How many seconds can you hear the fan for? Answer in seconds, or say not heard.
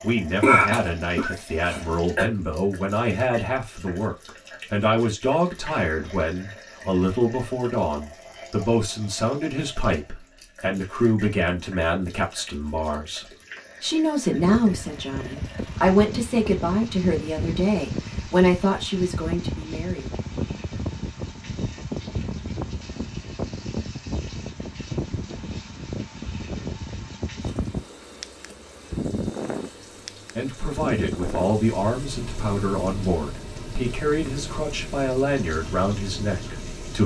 23 s.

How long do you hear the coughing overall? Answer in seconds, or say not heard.
2 s.